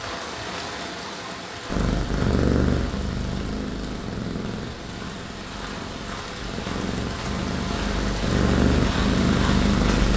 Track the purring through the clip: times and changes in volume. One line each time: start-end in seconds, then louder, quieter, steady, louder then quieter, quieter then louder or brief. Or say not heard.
1.7-10.1 quieter then louder.